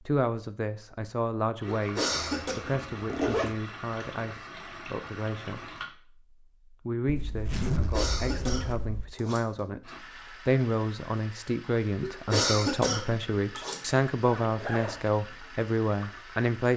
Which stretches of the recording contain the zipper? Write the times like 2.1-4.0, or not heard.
2.1-3.5, 7.0-9.1, 14.4-15.1.